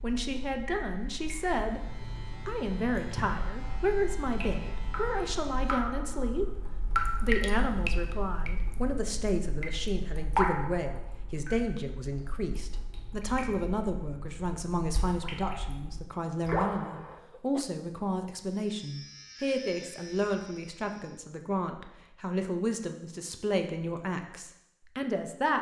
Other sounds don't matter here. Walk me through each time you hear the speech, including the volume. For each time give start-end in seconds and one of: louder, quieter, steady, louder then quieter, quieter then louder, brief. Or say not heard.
0.0-1.8 brief
2.5-25.5 steady.